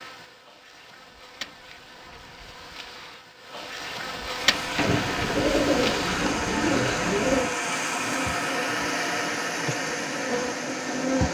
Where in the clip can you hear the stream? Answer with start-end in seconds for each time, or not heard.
4.4-11.2.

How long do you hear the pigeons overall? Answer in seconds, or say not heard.
3 s.